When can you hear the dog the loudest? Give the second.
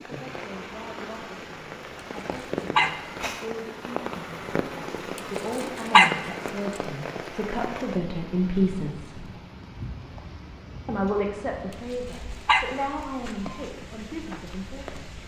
6 s.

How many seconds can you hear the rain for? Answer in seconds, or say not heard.
15 s.